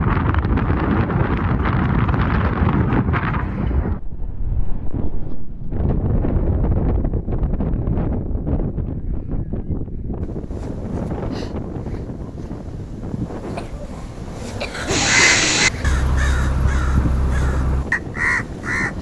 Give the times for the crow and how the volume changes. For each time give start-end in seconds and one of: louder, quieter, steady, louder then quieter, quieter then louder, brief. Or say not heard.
14.8-18.9 quieter then louder.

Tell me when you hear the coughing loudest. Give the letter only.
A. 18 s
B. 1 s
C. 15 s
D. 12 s
C.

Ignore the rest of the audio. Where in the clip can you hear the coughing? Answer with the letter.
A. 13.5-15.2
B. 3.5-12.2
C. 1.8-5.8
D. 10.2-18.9
A.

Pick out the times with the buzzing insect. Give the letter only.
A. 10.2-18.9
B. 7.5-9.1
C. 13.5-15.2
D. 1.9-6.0
A.